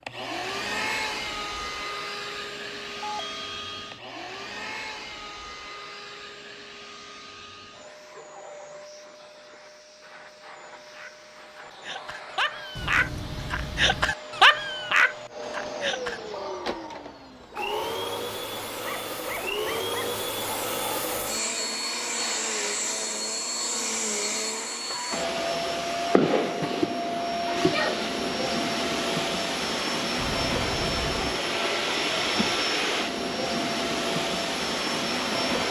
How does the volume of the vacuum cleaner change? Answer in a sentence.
The loudness of the vacuum cleaner goes down, then up.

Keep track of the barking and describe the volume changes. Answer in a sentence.
The volume of the barking goes up, then down.